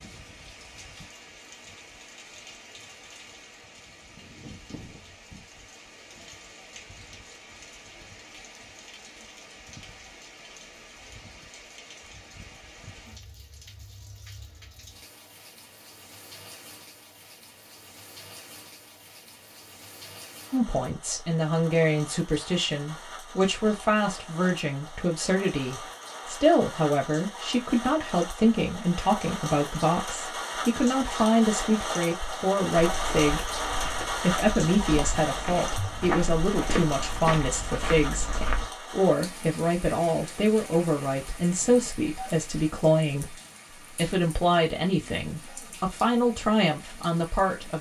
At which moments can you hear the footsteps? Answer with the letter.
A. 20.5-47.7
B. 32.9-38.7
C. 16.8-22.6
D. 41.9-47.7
B.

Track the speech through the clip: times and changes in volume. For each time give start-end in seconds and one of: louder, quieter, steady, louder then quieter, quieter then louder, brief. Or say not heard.
20.5-47.7 steady.